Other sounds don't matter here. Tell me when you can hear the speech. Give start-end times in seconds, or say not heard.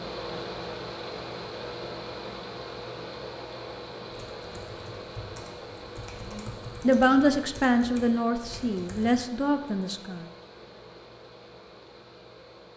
6.8-10.2.